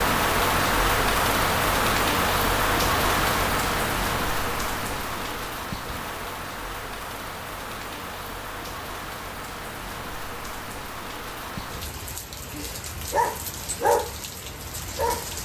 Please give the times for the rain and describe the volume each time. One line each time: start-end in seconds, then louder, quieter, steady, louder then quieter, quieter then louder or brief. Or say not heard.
0.0-15.3 quieter.